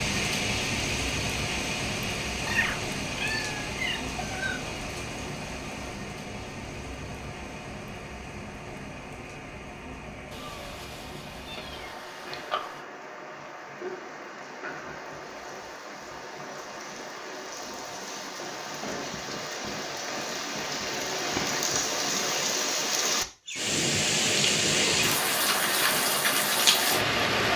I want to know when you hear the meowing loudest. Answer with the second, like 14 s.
3 s.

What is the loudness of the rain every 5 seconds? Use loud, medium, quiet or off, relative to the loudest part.
medium, quiet, quiet, quiet, loud, loud.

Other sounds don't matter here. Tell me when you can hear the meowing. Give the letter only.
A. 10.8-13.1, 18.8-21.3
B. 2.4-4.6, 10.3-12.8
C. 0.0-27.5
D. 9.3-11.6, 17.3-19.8
B.